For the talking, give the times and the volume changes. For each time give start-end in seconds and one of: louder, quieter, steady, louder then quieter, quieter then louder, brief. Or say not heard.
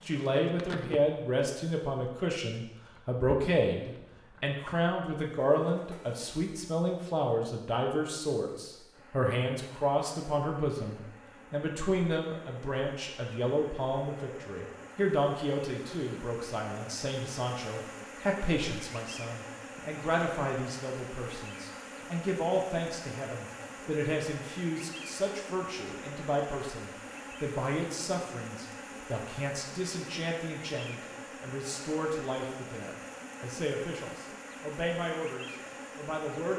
0.1-36.5 quieter.